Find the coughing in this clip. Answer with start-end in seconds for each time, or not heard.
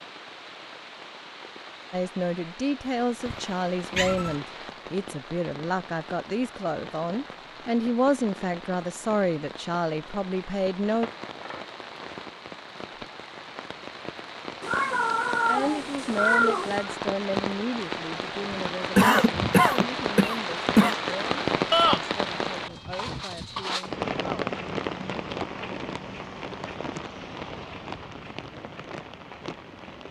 18.5-20.9.